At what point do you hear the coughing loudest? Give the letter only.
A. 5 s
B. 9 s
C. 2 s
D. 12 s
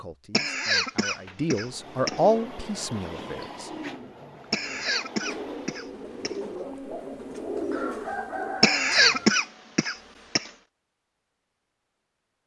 B.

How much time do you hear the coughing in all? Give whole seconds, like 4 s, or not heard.
6 s.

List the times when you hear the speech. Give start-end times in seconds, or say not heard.
0.0-3.7.